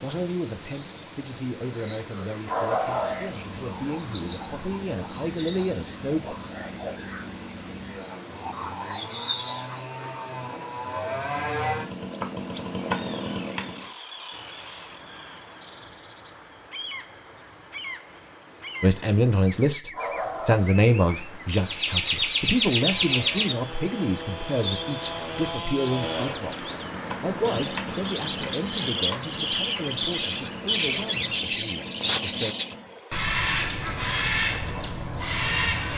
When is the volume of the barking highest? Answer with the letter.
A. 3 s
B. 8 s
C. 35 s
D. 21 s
A.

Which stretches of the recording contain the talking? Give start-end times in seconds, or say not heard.
0.0-6.3, 18.8-32.5.